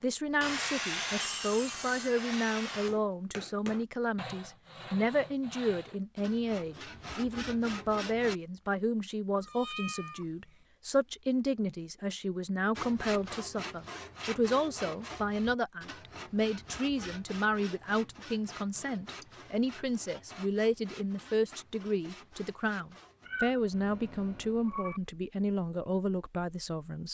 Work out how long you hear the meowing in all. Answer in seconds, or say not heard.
3 s.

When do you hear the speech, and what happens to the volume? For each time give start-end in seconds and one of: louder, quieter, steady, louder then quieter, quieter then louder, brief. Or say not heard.
0.0-27.0 steady.